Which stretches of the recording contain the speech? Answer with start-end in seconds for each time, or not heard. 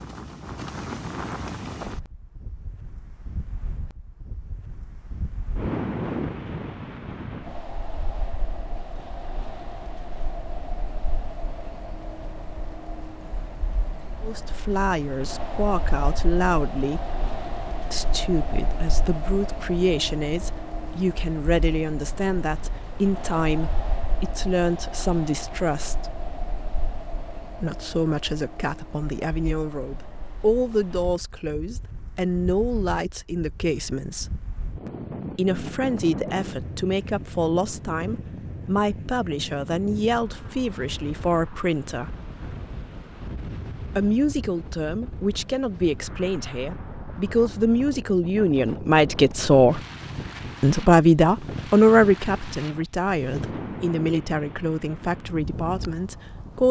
14.2-17.1, 17.9-26.1, 27.6-34.4, 35.4-42.1, 44.0-49.8, 50.6-56.6.